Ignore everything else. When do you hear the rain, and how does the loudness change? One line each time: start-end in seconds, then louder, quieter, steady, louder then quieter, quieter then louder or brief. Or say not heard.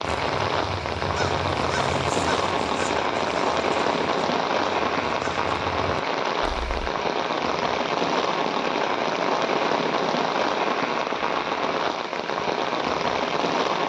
0.0-13.8 steady.